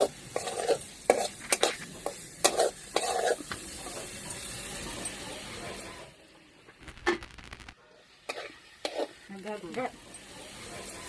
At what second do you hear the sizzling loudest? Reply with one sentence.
The loudest moment of the sizzling is at 3 seconds.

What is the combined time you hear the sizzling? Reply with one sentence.
You can hear the sizzling for 11 seconds altogether.